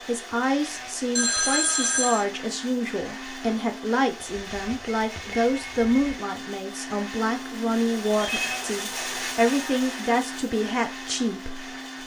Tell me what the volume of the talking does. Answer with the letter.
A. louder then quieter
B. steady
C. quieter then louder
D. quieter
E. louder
B.